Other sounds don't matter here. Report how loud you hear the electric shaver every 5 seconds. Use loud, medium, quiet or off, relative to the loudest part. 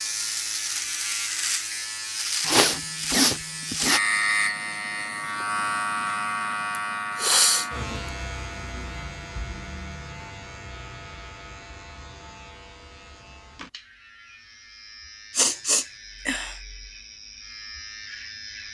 loud, loud, quiet, quiet.